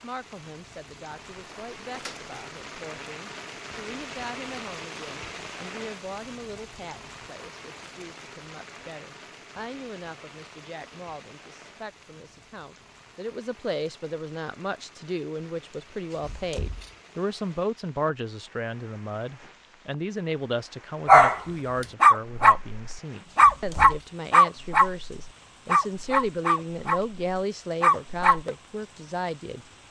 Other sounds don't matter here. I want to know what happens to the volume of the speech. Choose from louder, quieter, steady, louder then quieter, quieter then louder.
louder.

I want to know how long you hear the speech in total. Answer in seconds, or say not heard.
30 s.